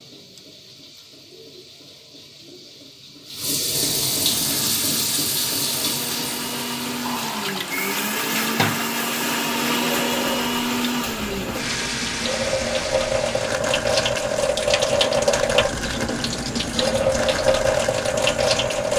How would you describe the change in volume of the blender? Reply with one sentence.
The volume of the blender goes up, then down.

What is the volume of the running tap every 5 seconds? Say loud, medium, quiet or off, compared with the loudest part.
medium, medium, loud, loud.